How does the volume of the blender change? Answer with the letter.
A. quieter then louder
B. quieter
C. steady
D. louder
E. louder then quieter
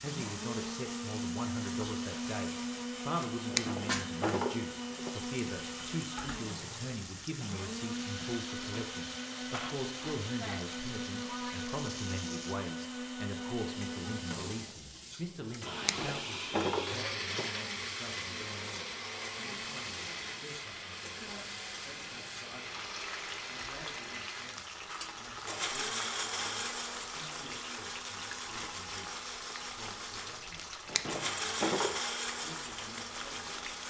C.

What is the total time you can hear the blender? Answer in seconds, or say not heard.
34 s.